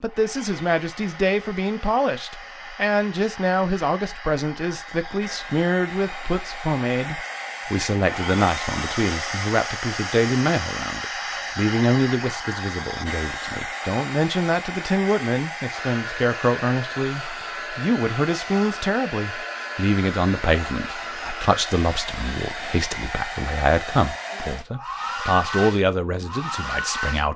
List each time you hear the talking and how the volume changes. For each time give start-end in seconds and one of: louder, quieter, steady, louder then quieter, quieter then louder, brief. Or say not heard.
0.0-27.3 steady.